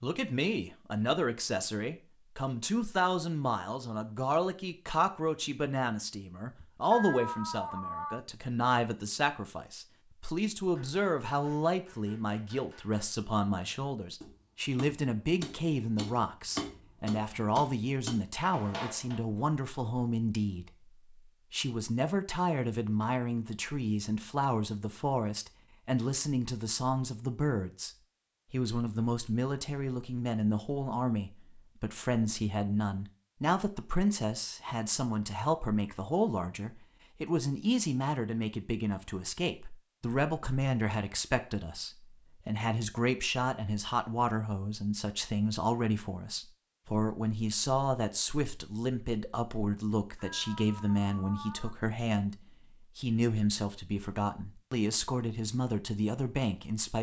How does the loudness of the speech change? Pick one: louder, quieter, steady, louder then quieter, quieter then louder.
steady.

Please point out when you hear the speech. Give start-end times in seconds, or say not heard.
0.0-20.7, 21.5-27.9, 28.5-52.4, 53.0-56.9.